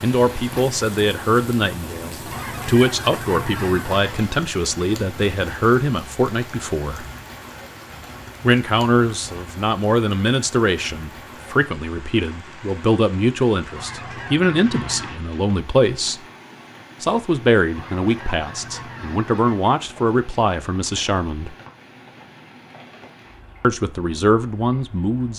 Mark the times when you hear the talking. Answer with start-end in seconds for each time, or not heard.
0.0-7.0, 8.4-16.2, 17.0-21.6, 23.6-25.3.